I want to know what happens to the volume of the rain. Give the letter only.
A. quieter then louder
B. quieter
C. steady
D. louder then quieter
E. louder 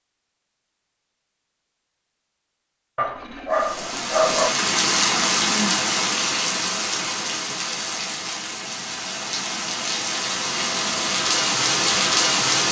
A.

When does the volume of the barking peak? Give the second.
4 s.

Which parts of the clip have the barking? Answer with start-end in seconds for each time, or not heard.
3.0-4.5.